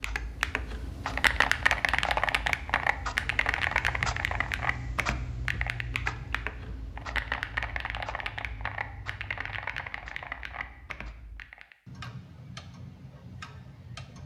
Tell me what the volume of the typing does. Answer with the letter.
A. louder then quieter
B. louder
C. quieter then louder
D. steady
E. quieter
E.